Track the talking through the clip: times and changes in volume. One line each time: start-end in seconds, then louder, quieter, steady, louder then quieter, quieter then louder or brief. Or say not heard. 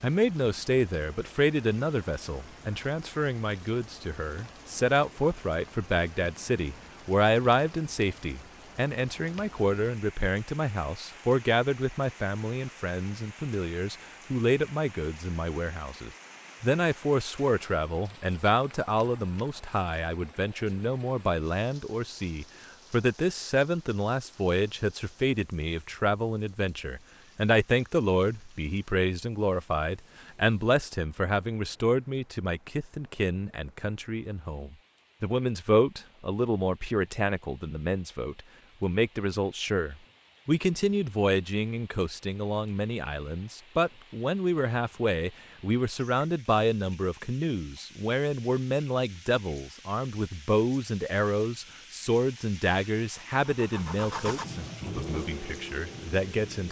0.0-56.6 steady.